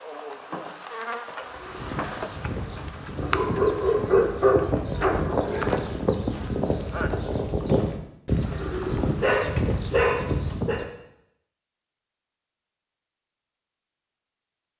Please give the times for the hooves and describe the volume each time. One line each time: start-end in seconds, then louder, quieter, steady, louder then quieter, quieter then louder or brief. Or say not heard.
1.5-10.9 louder.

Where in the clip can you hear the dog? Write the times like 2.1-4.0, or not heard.
3.2-5.8, 9.2-10.8.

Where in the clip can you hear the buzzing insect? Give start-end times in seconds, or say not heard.
0.0-7.5.